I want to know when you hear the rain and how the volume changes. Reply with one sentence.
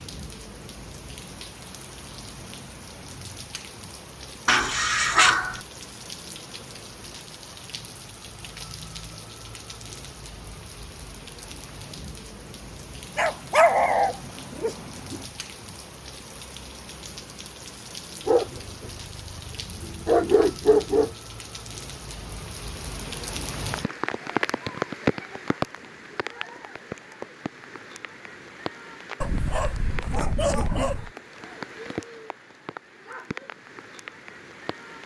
You can hear the rain from 0.0 to 35.0 s, getting louder then quieter.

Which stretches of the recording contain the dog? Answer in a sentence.
The dog can be heard from 4.5 to 5.6 s, from 13.2 to 15.2 s, from 18.2 to 21.1 s and from 29.2 to 31.1 s.